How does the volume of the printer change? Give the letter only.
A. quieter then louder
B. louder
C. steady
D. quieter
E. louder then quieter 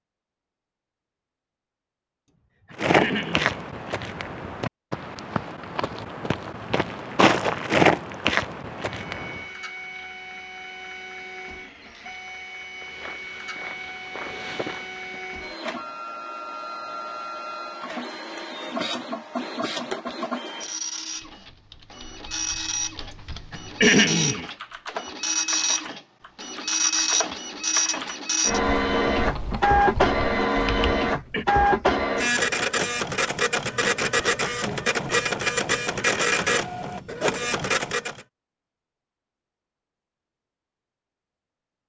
B.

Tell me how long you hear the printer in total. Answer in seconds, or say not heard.
29 s.